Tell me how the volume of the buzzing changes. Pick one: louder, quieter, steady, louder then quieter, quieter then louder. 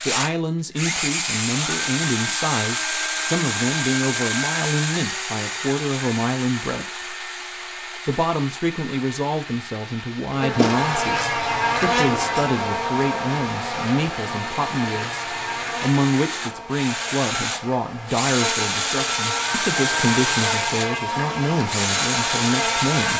quieter then louder.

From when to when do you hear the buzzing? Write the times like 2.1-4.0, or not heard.
10.3-23.1.